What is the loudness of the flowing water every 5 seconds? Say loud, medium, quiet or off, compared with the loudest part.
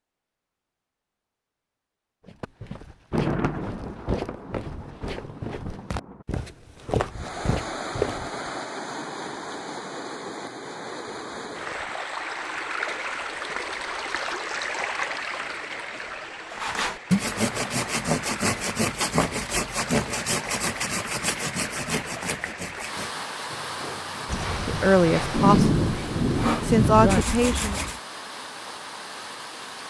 off, loud, loud, loud, loud, medium.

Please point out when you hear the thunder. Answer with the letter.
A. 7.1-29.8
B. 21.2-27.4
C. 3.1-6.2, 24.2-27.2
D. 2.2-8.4
C.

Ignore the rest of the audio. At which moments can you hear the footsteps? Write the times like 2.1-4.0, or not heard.
2.2-8.4.